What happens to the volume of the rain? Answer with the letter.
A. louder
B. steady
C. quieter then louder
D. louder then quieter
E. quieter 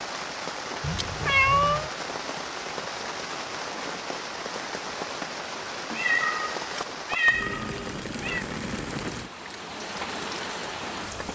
B.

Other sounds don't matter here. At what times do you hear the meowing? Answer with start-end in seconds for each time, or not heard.
0.8-1.9, 6.0-8.4.